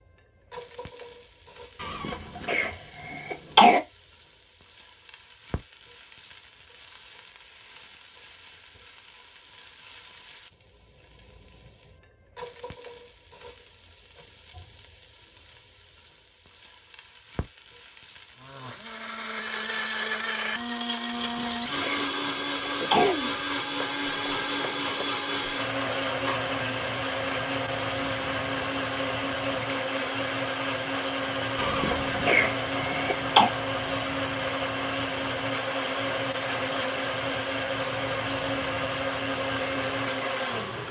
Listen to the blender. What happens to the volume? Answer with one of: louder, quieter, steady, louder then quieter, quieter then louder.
steady.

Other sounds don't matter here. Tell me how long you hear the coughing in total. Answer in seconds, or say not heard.
6 s.